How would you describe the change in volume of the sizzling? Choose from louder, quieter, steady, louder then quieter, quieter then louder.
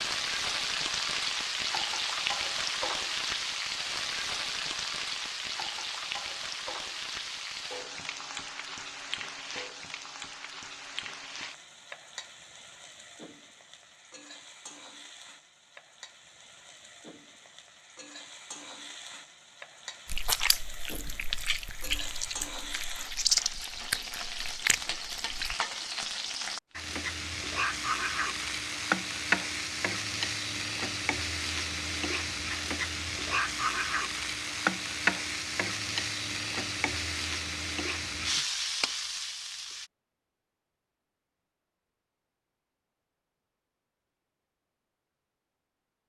quieter then louder.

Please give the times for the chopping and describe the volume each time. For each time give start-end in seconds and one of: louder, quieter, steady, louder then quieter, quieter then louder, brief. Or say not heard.
not heard.